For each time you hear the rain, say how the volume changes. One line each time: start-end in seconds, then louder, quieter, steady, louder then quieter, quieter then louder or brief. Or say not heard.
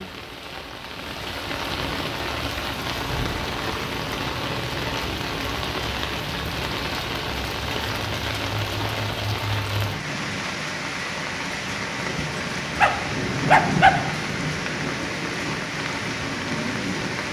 0.0-17.2 steady.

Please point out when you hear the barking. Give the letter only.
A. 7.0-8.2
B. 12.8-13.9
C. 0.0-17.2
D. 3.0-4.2
B.